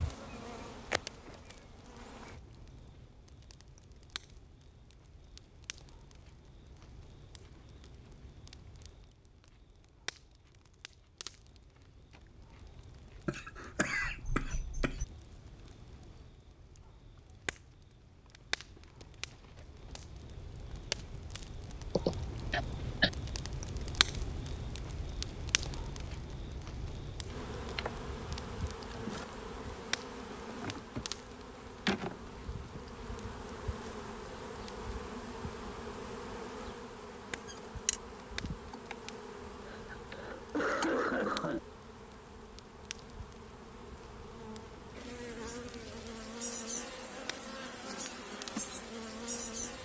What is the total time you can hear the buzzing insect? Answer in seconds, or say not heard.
25 s.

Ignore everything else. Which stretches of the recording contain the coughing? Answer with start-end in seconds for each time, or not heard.
13.2-15.1, 21.9-23.1, 39.6-41.6.